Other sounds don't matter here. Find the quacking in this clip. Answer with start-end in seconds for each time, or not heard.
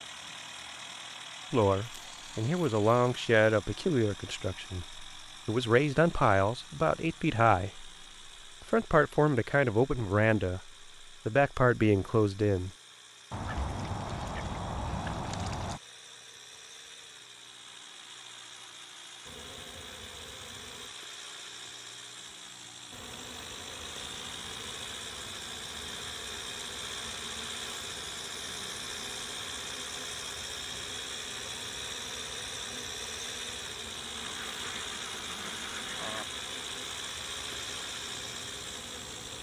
13.3-15.8, 34.2-36.2.